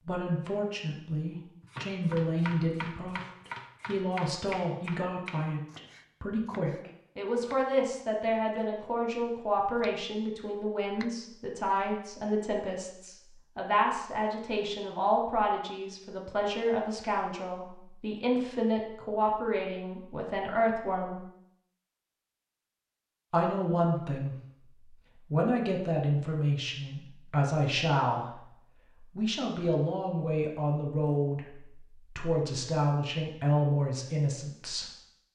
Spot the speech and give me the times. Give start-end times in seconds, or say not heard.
0.1-21.2, 23.3-24.4, 25.3-34.9.